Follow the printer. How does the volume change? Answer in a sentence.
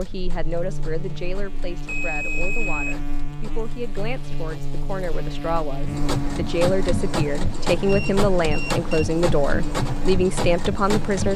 The loudness of the printer goes up.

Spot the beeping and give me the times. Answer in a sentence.
The beeping can be heard from 1.9 to 3.0 s and from 7.8 to 9.1 s.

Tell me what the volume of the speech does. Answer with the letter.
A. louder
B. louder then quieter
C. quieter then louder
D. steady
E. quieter
A.